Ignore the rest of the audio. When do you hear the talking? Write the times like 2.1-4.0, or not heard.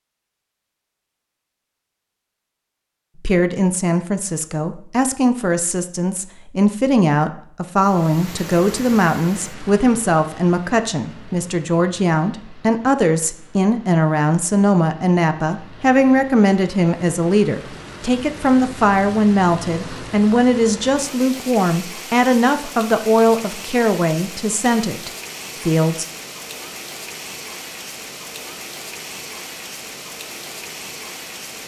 3.2-26.1.